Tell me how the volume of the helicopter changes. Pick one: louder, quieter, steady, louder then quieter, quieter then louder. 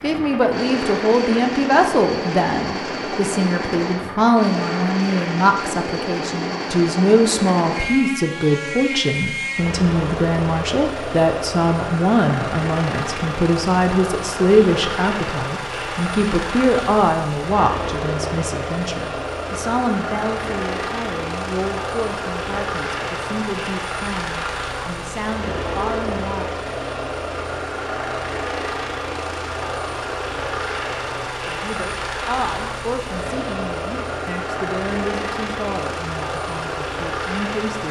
steady.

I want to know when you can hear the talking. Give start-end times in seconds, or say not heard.
0.0-26.5, 31.4-37.8.